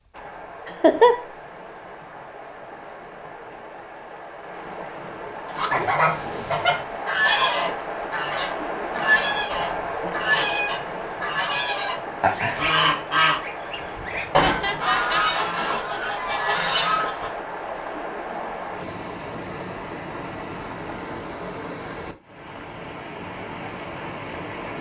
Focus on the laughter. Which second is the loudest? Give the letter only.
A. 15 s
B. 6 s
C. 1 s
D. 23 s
C.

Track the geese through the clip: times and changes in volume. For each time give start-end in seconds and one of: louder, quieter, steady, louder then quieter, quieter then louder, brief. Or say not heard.
5.5-17.3 steady.